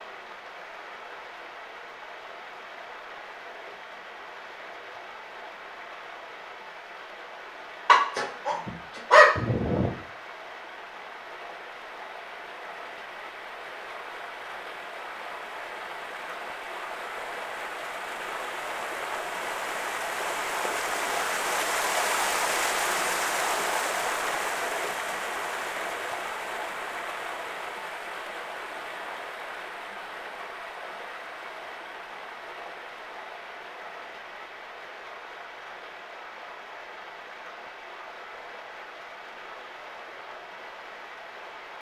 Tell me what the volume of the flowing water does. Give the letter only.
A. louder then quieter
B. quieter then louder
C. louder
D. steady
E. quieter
A.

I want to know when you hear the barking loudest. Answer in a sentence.
The loudest moment of the barking is at 9 seconds.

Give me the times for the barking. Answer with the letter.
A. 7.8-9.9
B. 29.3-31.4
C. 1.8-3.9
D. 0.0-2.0
A.